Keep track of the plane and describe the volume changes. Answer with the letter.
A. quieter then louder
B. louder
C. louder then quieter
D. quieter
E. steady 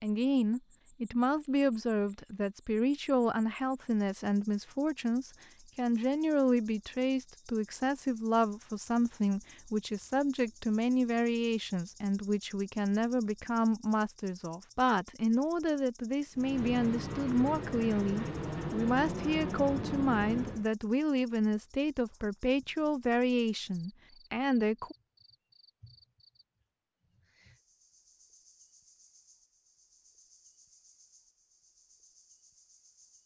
E.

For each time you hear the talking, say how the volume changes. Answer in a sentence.
You can hear the talking from 0.0 to 24.9 s, at a steady volume.